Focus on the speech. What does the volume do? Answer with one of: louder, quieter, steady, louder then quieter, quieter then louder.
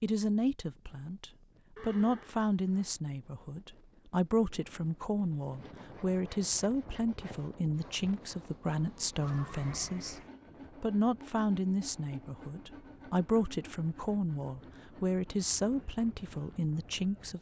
steady.